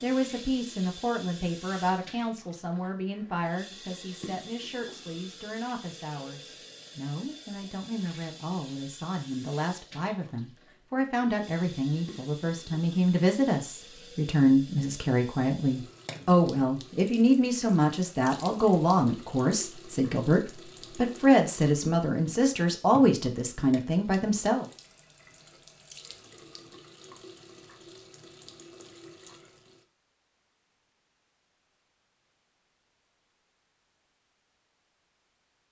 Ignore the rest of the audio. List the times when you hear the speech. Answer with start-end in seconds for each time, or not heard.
0.0-24.6.